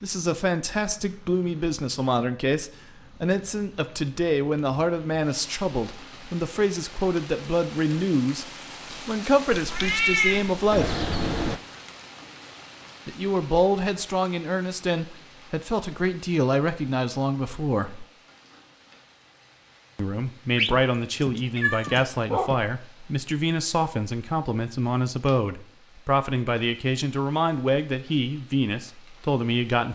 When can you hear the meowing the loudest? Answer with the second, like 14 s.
10 s.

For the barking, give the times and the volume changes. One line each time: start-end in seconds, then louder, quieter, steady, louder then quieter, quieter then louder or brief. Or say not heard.
not heard.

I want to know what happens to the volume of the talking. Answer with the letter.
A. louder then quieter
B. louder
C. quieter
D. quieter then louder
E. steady
E.